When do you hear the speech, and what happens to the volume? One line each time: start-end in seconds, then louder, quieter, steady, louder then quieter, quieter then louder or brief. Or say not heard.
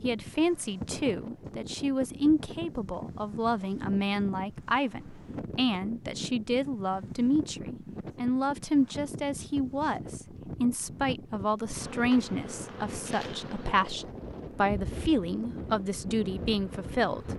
0.0-17.3 steady.